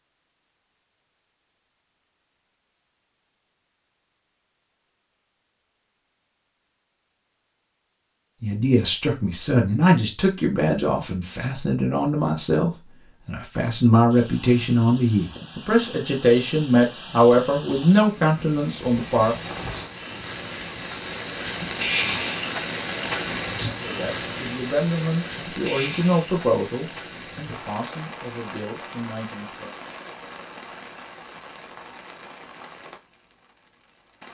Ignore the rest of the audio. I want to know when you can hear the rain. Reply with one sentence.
The rain can be heard from 14.1 to 34.2 s.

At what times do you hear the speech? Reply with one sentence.
The speech can be heard from 8.4 to 19.4 s and from 23.6 to 29.8 s.